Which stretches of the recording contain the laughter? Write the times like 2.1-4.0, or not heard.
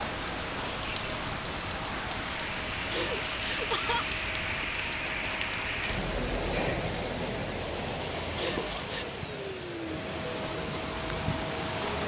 2.9-4.1, 8.3-9.1.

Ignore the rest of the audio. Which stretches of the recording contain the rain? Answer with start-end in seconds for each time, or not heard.
0.0-12.0.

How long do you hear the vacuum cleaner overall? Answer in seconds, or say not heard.
12 s.